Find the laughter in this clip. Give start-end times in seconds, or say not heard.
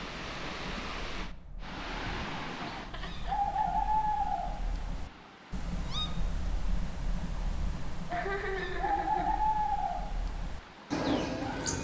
2.9-3.5, 8.1-9.4.